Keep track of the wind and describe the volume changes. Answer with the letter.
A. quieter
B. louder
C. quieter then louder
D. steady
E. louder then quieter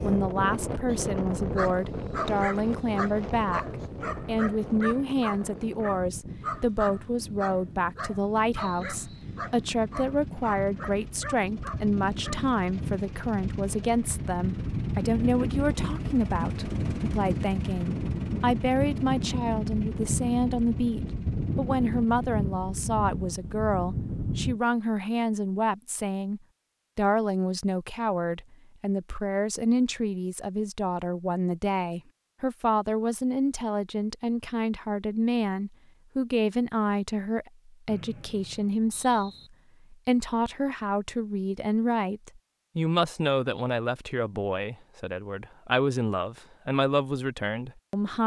C.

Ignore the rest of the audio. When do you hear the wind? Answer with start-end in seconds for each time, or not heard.
0.0-24.6.